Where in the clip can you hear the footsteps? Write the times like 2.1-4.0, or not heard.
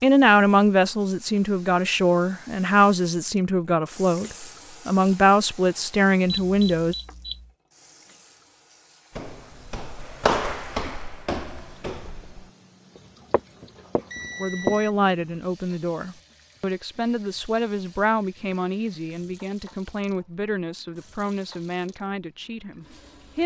9.2-14.8.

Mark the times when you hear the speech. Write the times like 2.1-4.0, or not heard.
0.0-7.0, 14.3-23.4.